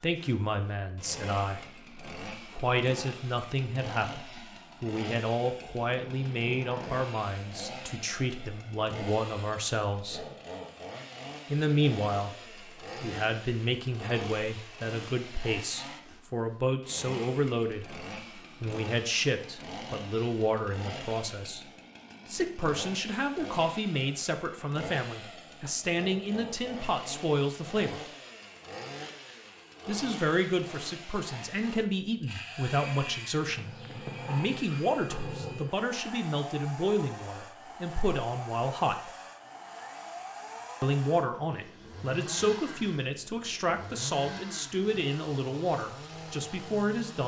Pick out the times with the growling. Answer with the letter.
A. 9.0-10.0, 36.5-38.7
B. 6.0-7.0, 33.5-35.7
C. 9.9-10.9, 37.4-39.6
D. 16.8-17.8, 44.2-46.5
B.